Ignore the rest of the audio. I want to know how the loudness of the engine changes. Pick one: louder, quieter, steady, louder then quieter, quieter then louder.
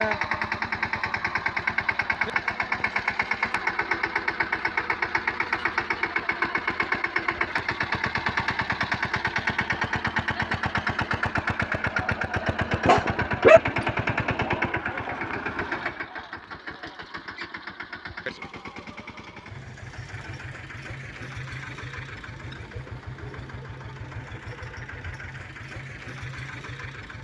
quieter.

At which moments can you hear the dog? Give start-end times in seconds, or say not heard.
12.8-13.6.